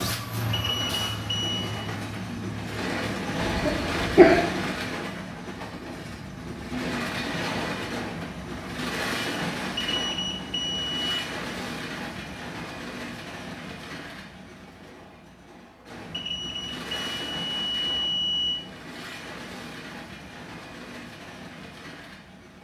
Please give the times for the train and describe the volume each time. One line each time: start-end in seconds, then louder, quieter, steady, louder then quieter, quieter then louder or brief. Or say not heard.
0.0-22.5 quieter.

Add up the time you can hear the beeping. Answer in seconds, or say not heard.
5 s.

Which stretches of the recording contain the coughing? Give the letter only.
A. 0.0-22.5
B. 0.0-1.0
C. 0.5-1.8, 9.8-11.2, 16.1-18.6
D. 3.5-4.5
D.